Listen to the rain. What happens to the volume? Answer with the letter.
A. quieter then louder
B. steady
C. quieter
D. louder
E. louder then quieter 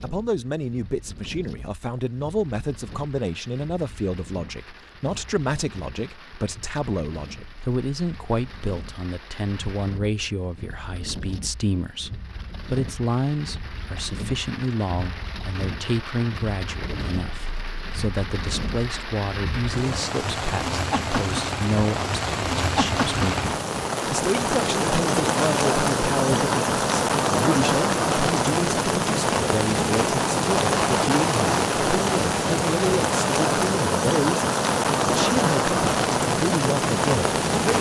D.